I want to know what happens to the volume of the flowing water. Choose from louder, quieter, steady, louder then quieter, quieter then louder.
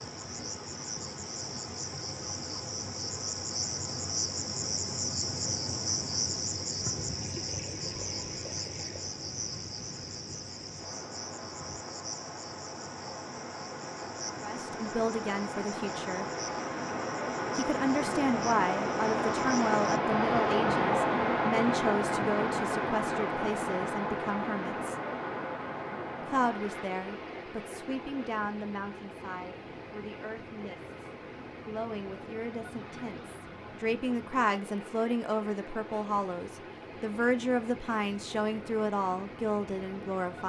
louder then quieter.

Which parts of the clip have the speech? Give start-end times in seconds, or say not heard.
14.4-16.2, 17.6-24.9, 26.2-40.4.